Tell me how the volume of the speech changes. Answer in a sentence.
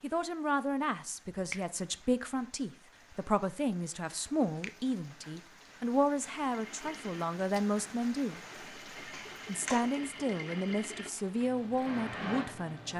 The loudness of the speech stays about the same.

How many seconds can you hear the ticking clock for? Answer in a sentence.
You can't hear the ticking clock here.